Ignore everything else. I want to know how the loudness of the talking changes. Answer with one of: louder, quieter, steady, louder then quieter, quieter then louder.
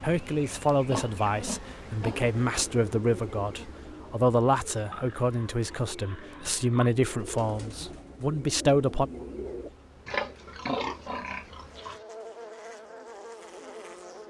steady.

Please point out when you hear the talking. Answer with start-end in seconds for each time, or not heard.
0.0-9.1.